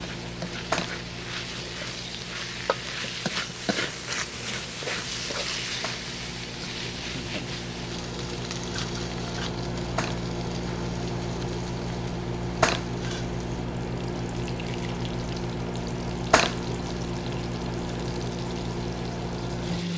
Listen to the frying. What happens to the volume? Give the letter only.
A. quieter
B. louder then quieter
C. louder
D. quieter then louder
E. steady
A.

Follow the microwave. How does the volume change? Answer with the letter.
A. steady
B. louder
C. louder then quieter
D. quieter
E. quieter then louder
B.